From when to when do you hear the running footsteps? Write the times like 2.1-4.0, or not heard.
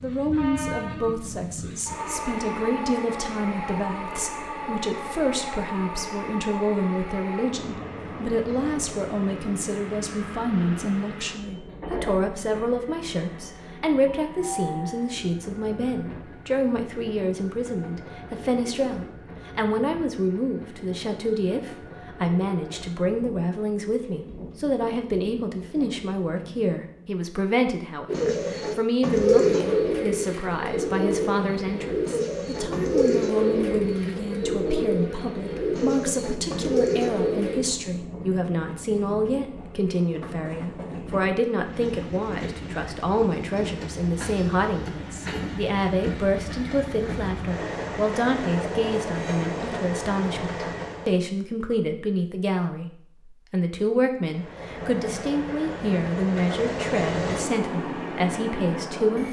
not heard.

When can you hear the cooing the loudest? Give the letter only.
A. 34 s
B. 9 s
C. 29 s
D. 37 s
C.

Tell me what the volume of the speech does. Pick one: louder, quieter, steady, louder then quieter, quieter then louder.
steady.